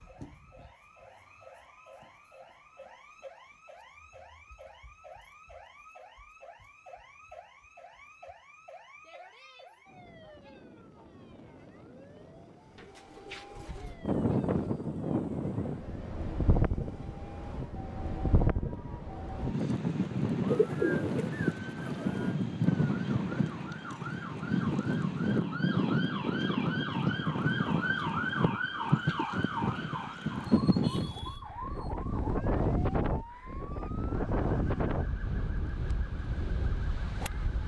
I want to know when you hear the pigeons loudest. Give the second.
21 s.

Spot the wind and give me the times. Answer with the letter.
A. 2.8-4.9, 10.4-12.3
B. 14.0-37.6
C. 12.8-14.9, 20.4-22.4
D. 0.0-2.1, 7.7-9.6
B.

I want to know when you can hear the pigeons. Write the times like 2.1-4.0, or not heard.
12.8-14.9, 20.4-22.4.